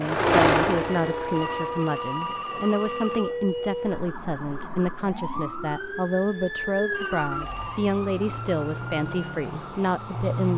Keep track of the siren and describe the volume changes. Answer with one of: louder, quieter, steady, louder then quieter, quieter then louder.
steady.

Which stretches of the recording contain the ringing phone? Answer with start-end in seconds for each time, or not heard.
1.3-3.4, 6.9-7.8.